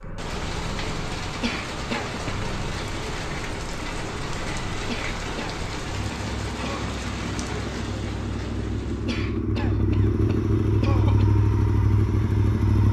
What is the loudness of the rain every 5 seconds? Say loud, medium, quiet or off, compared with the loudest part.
loud, loud, off.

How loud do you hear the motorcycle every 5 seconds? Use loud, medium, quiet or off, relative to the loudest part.
quiet, medium, loud.